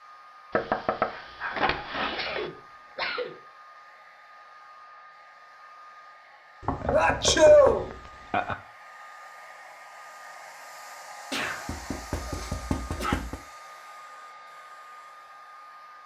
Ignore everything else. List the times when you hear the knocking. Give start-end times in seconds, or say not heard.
0.5-2.5, 6.6-8.6, 11.7-13.4.